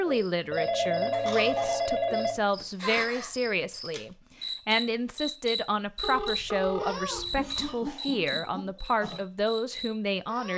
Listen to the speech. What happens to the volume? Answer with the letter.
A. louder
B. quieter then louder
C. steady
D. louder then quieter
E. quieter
C.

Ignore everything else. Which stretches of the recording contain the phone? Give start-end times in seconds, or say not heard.
0.5-2.4, 6.0-7.7.